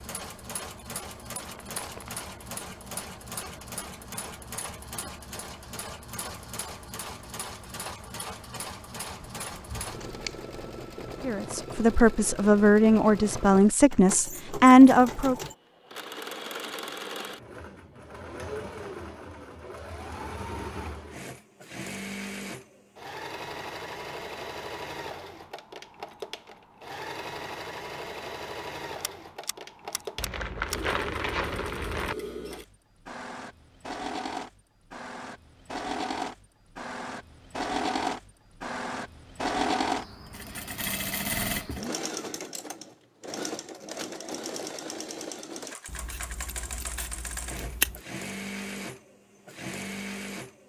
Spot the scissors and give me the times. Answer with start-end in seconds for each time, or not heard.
9.2-10.5, 29.0-30.9, 45.9-48.0.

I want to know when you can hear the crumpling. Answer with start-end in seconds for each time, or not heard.
1.4-2.2, 30.1-32.1.